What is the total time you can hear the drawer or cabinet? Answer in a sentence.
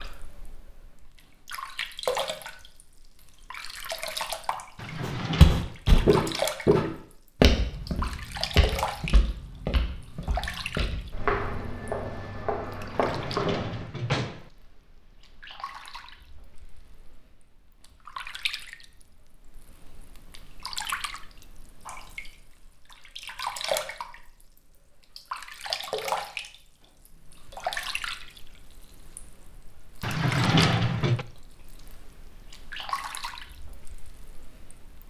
The drawer or cabinet can be heard for 4 seconds in total.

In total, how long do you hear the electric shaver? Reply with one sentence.
The electric shaver can't be heard in this clip.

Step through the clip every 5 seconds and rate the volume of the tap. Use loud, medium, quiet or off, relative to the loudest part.
loud, loud, medium, medium, loud, loud, medium.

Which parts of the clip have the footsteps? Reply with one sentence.
The footsteps can be heard from 5.0 to 13.8 s.